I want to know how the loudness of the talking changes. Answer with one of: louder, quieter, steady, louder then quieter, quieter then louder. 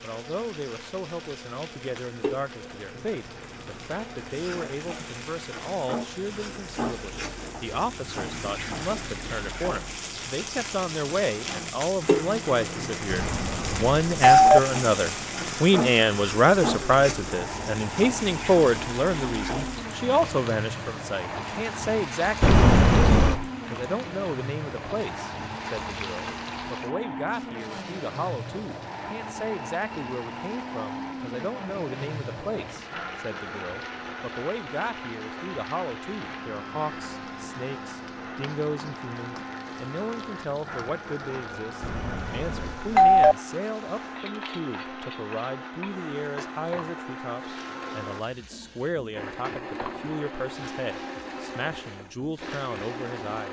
louder then quieter.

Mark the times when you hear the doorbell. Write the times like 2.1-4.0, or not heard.
13.1-14.6, 22.4-23.4, 41.8-43.4.